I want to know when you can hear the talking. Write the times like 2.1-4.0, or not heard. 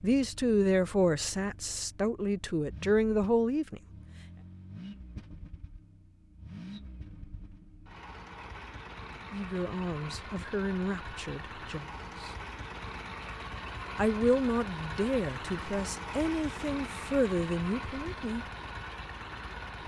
0.0-3.8, 9.3-12.3, 13.9-18.4.